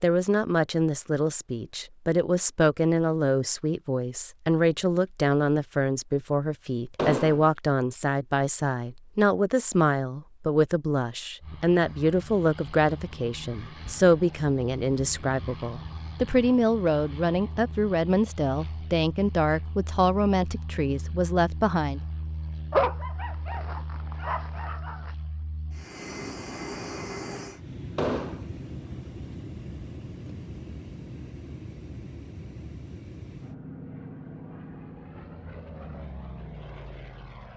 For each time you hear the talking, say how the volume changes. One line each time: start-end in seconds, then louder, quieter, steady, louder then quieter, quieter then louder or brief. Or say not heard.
0.0-22.0 steady.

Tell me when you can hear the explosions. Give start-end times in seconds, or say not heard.
7.0-7.5, 27.9-28.4.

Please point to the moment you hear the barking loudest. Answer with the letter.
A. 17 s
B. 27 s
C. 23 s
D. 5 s
C.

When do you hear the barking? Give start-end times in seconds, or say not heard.
22.7-25.1.